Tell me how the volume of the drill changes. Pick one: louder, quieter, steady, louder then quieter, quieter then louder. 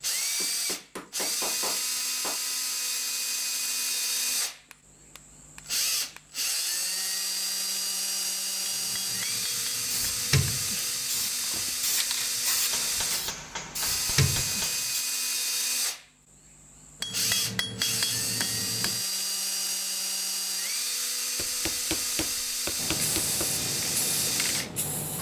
steady.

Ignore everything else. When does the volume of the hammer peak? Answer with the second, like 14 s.
18 s.